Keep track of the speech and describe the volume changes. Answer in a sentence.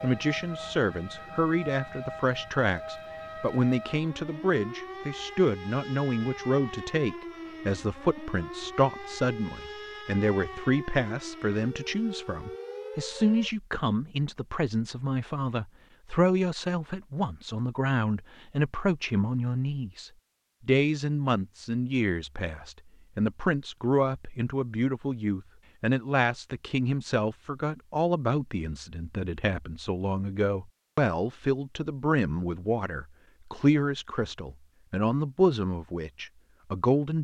The volume of the speech stays about the same.